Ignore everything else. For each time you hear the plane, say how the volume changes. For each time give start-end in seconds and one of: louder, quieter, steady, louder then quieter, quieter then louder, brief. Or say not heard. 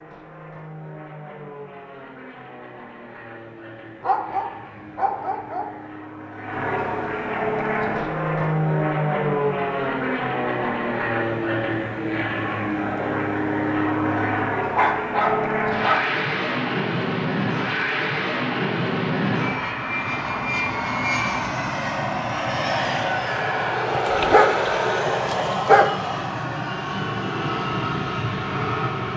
0.0-29.1 louder.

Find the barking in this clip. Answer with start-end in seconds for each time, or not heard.
4.0-5.8, 14.8-16.1, 23.9-25.9.